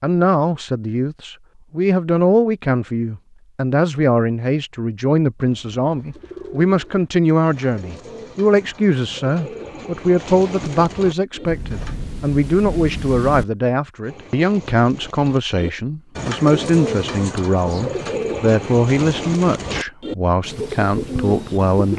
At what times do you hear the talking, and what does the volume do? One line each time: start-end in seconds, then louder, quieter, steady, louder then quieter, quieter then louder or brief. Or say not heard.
0.0-21.9 steady.